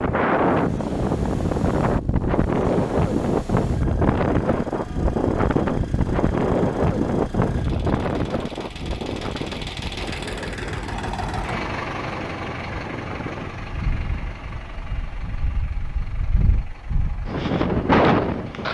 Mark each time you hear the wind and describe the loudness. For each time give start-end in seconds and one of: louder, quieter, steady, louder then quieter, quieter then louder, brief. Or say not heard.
0.0-18.6 quieter then louder.